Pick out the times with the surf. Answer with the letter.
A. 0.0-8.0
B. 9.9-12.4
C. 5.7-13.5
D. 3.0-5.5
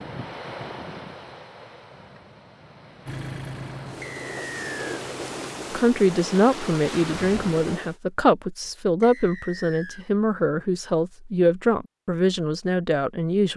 A.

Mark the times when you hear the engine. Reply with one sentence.
You can hear the engine from 3.0 to 5.5 s.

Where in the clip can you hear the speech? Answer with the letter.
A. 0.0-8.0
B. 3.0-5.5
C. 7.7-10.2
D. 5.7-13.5
D.